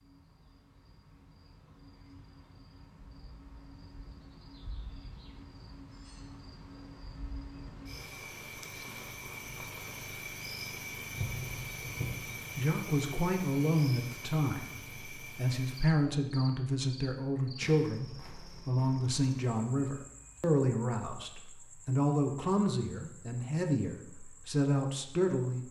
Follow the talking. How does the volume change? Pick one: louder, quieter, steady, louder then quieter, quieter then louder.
steady.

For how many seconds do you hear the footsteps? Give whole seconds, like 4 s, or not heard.
not heard.